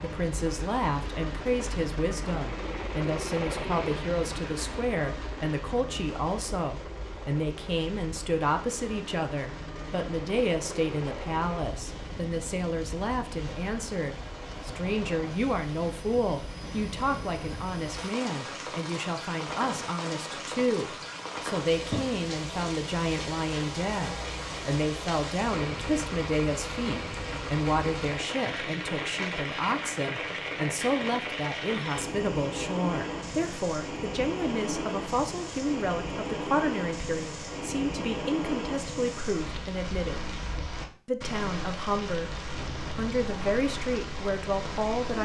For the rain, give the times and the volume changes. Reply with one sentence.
You can hear the rain from 0.0 to 45.2 s, getting louder.